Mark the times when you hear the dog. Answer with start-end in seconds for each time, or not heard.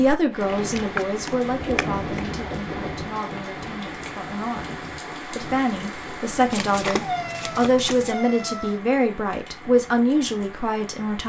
not heard.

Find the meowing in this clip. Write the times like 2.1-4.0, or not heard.
1.6-3.1, 7.0-8.8.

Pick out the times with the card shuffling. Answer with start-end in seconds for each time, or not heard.
0.6-2.3, 6.5-8.2.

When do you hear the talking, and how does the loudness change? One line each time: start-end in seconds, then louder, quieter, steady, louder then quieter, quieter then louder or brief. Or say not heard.
0.0-11.2 quieter then louder.